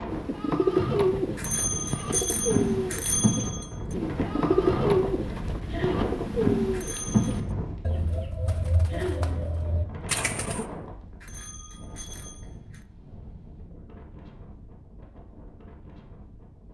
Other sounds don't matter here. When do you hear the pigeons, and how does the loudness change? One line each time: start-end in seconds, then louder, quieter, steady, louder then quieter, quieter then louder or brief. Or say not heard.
0.1-10.7 quieter.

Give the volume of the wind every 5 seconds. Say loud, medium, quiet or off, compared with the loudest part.
loud, loud, medium, quiet.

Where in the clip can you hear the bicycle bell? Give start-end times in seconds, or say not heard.
1.4-4.0, 6.7-7.4, 11.2-12.8.